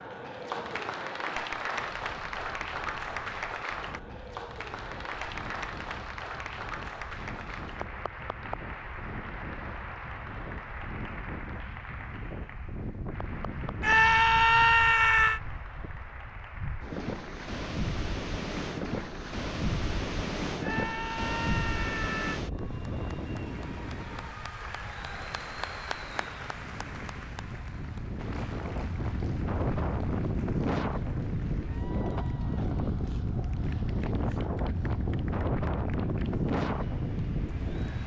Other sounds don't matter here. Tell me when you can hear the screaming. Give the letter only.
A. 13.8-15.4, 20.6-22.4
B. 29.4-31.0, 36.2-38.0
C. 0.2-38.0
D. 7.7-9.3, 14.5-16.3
A.